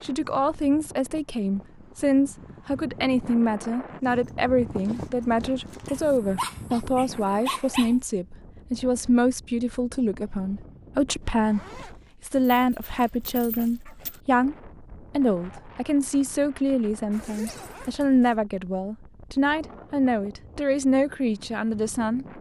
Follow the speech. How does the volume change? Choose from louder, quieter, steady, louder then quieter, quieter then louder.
steady.